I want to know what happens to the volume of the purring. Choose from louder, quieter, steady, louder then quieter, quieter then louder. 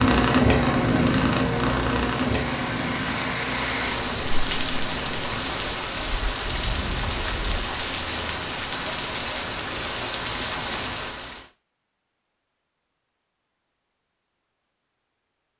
quieter.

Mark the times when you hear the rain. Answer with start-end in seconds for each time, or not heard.
0.0-11.4.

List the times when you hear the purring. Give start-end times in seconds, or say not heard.
0.0-7.7.